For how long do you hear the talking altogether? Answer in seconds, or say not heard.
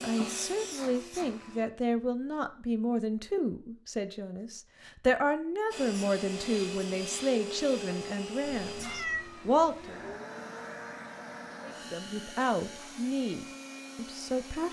13 s.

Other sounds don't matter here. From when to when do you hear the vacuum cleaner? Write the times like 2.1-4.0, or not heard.
0.0-1.6, 5.7-14.6.